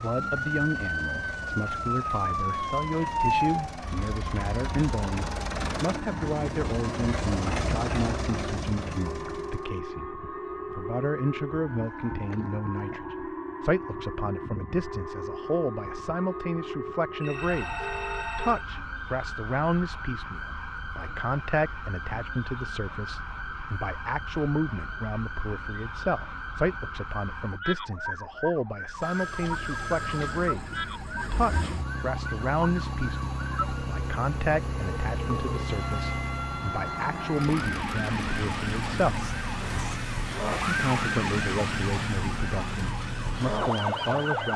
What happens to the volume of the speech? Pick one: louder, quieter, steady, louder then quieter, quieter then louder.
steady.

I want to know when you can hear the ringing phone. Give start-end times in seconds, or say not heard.
17.2-18.6, 29.0-30.6.